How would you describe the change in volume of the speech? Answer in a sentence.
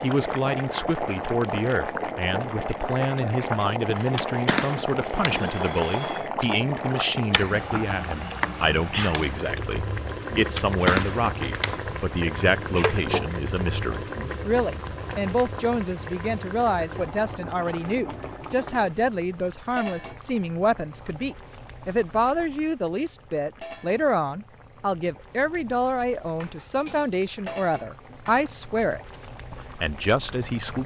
The volume of the speech stays about the same.